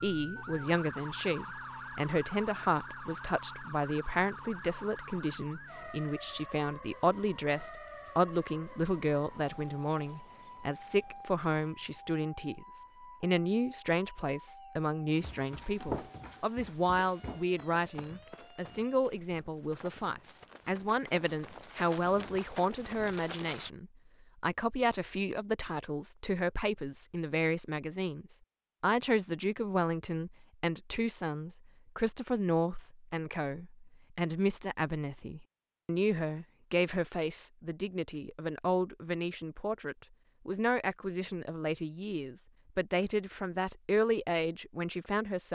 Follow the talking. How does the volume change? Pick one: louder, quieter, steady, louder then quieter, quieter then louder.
steady.